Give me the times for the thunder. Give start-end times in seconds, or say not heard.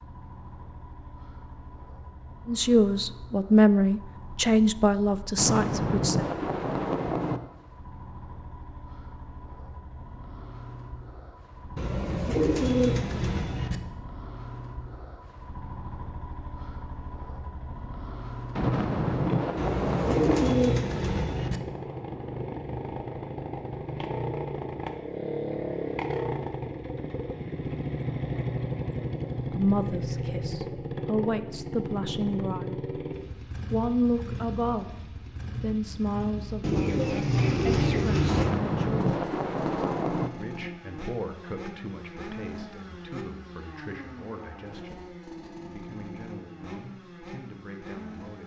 5.3-7.4, 18.6-20.6, 38.2-40.3.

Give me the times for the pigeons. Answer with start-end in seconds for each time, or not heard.
11.8-13.8, 19.6-21.6, 36.6-38.5.